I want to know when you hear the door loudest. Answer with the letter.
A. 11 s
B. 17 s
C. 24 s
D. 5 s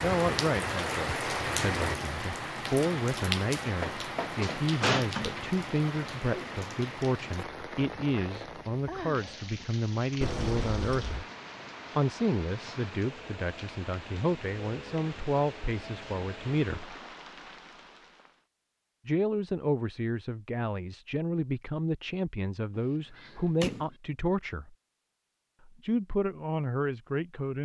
D.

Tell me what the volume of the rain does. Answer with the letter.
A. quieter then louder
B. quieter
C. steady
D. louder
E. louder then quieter
B.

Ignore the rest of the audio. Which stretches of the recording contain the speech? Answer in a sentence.
The speech can be heard from 0.0 to 11.2 s, from 11.9 to 16.9 s, from 19.1 to 24.8 s and from 25.6 to 27.6 s.